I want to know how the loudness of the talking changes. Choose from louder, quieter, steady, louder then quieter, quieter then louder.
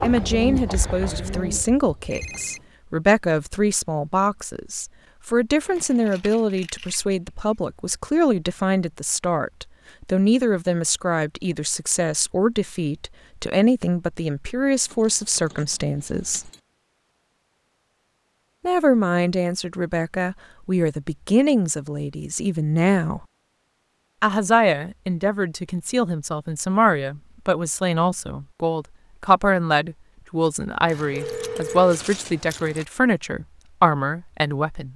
steady.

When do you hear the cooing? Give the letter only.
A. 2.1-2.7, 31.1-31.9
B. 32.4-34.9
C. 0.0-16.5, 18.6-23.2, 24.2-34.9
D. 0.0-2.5
D.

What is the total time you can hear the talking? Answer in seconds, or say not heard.
32 s.